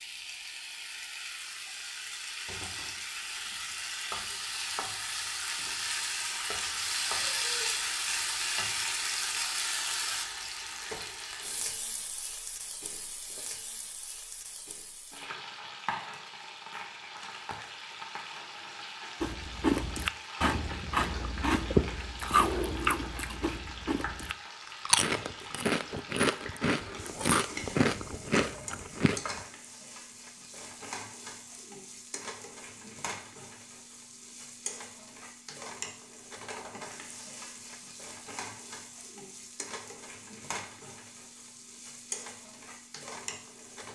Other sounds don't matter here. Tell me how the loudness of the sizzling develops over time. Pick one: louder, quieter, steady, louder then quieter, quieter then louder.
quieter.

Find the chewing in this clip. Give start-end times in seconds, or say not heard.
19.2-29.2.